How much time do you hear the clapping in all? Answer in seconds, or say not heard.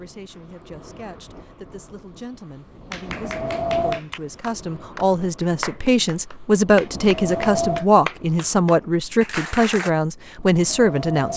7 s.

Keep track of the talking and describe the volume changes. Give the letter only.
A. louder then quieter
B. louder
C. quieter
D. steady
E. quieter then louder
B.